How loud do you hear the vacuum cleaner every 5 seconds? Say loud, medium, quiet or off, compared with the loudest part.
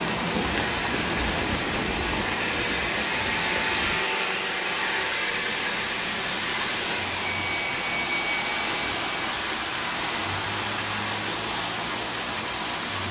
loud, loud, off.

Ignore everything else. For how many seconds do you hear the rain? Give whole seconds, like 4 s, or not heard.
13 s.